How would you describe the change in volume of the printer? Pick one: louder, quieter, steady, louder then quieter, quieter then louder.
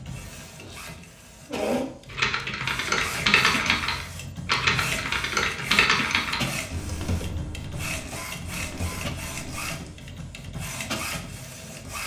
steady.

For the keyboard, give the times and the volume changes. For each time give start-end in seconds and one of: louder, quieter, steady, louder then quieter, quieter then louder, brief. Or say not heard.
2.1-9.9 quieter.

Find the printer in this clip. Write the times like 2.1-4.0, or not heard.
0.0-12.0.